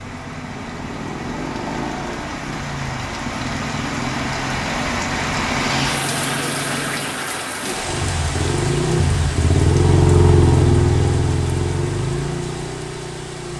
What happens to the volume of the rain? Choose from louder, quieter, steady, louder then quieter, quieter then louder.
louder then quieter.